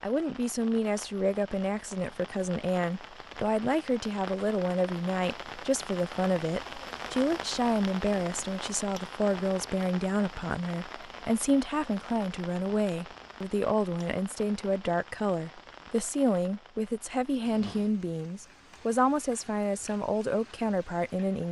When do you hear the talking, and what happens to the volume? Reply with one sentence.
You can hear the talking from 0.0 to 21.4 s, at a steady volume.